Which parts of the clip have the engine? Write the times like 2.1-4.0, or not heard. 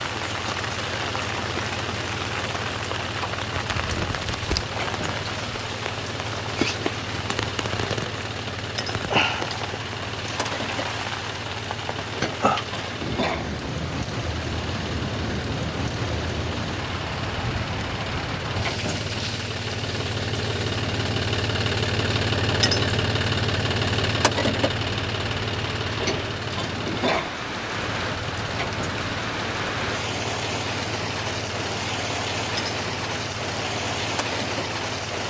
0.0-35.2.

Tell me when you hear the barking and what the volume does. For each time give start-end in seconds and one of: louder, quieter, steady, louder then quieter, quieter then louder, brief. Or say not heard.
not heard.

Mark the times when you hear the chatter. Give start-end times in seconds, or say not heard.
not heard.